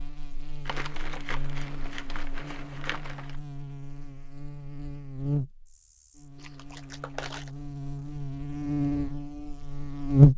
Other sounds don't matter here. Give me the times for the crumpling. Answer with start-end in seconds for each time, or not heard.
0.7-3.4, 6.3-7.5.